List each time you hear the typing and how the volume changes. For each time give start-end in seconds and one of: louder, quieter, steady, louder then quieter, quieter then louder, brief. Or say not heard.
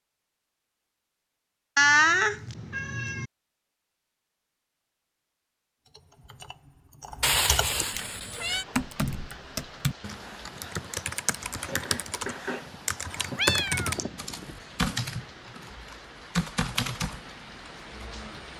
5.8-18.1 louder.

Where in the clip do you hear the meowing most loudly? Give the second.
2 s.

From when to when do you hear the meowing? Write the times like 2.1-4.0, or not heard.
1.8-3.2, 7.2-8.7, 12.6-14.6.